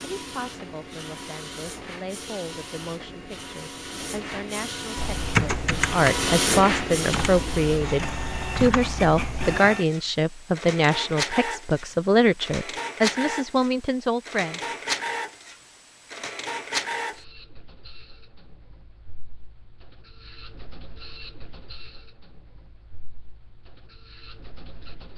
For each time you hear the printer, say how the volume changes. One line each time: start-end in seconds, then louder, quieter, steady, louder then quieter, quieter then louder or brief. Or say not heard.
0.0-25.1 louder then quieter.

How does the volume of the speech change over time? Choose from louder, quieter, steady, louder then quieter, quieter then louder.
louder.